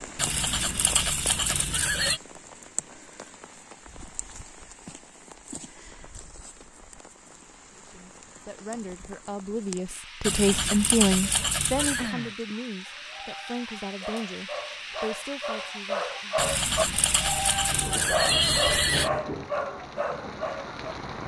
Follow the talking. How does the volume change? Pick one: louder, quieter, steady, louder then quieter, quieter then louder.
louder then quieter.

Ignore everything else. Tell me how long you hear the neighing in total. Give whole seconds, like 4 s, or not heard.
7 s.